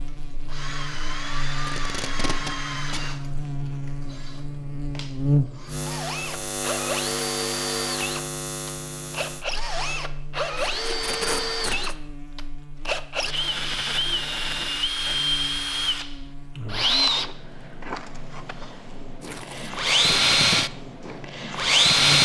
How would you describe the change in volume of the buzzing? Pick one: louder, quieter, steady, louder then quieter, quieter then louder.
louder then quieter.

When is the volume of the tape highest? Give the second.
11 s.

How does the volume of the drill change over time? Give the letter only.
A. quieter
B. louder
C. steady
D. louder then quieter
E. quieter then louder
B.